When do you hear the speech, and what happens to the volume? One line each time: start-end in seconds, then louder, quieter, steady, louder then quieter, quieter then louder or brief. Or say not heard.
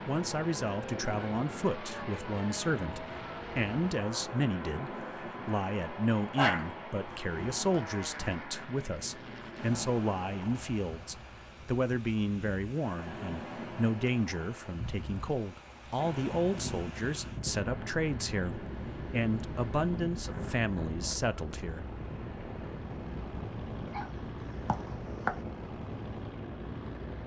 0.1-21.9 steady.